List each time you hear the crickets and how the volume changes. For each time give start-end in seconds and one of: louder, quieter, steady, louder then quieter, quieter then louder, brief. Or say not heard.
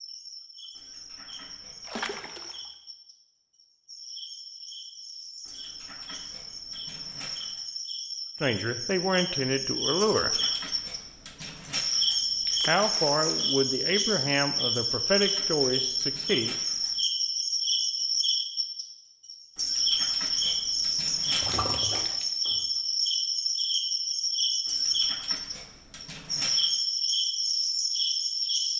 0.0-28.7 louder.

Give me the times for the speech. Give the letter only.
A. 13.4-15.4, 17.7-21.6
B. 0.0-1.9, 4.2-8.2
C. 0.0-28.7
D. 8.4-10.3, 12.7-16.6
D.